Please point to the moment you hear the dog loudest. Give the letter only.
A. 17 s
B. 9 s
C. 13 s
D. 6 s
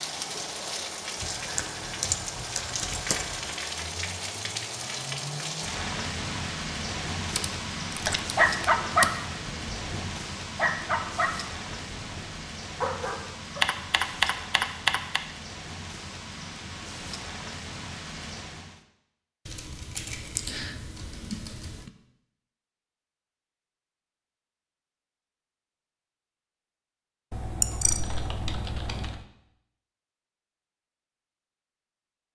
B.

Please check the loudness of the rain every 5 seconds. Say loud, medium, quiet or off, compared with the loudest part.
loud, loud, medium, medium, off, off, off.